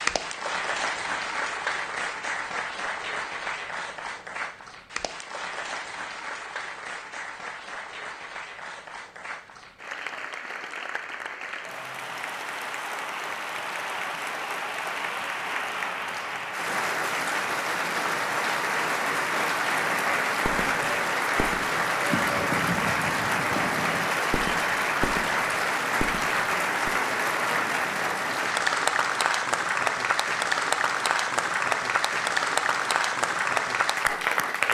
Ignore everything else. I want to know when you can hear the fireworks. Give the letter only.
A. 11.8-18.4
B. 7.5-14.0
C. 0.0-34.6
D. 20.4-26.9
D.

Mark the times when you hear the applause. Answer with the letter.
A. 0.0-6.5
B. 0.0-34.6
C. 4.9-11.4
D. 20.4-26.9
B.